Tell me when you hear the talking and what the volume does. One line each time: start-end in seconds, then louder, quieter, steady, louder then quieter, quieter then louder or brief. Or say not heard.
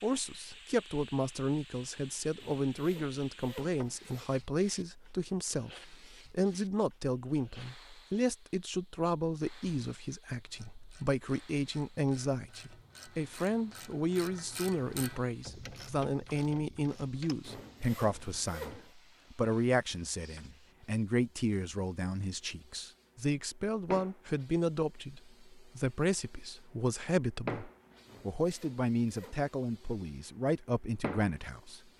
0.0-31.8 steady.